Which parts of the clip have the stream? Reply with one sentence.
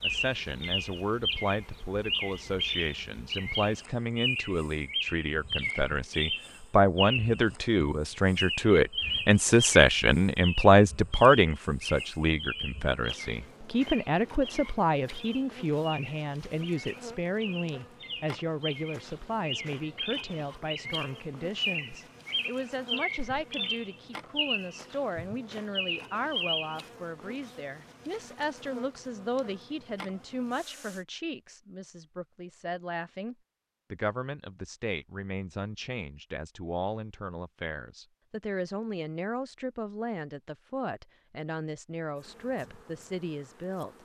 The stream can't be heard in this clip.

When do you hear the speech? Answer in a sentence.
You can hear the speech from 0.0 to 43.9 s.